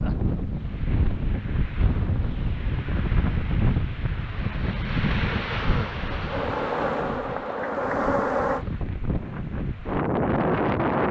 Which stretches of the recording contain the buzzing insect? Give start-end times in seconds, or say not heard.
6.2-8.7.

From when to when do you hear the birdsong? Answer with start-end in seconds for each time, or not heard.
not heard.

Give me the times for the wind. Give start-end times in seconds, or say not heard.
0.0-11.0.